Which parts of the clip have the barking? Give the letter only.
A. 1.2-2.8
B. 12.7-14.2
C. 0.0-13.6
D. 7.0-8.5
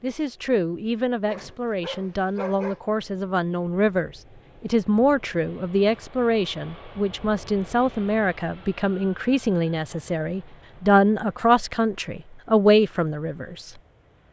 A.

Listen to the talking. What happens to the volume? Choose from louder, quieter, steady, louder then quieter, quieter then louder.
louder.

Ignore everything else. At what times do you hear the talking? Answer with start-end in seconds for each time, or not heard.
0.0-13.6.